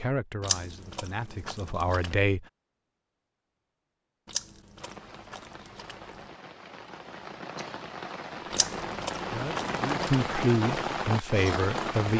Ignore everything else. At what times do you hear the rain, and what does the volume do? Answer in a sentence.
The rain can be heard from 4.8 to 12.1 s, getting louder.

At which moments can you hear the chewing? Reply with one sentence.
You can hear the chewing from 0.4 to 2.2 s, from 4.2 to 6.3 s and from 8.5 to 10.2 s.